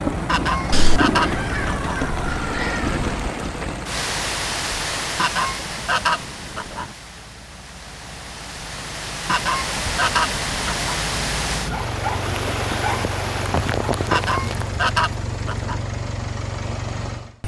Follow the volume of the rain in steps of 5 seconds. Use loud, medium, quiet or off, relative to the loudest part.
loud, medium, loud, off.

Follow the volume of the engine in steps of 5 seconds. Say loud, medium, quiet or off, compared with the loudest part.
loud, medium, loud, loud.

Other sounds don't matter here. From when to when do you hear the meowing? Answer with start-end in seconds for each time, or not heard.
0.7-3.0.